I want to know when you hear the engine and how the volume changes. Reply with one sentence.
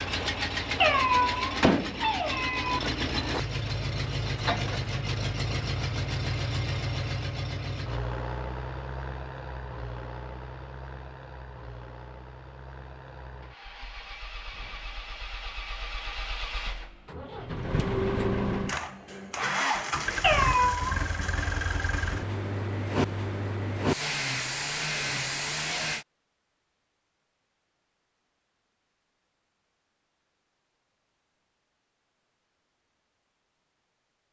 You can hear the engine from 0.0 to 26.1 s, getting quieter then louder.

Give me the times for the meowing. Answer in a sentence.
You can hear the meowing from 0.8 to 2.8 s and from 20.2 to 20.9 s.